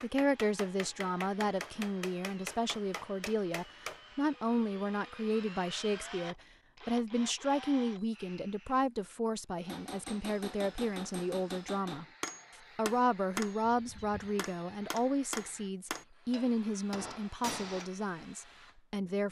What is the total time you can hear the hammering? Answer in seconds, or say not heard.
12 s.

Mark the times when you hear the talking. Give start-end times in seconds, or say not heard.
0.0-12.1, 12.8-19.2.